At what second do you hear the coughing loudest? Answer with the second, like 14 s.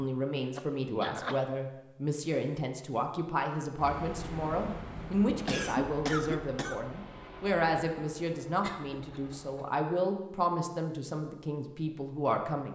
6 s.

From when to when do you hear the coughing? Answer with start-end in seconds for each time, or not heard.
0.6-1.5, 5.5-6.8, 8.6-9.7.